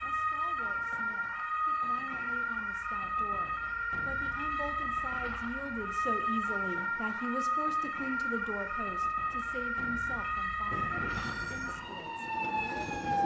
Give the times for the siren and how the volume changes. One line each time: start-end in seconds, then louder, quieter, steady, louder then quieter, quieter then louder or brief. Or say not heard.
0.0-13.2 steady.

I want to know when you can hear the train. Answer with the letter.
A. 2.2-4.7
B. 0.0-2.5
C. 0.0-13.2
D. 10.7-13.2
D.